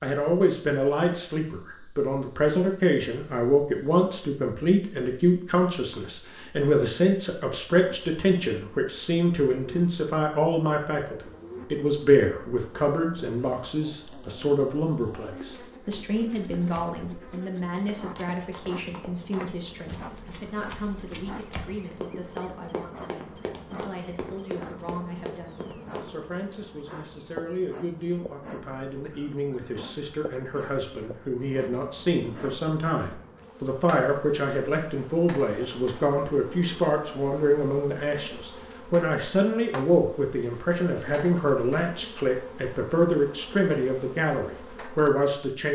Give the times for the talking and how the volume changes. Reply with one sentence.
You can hear the talking from 0.0 to 45.7 s, getting quieter then louder.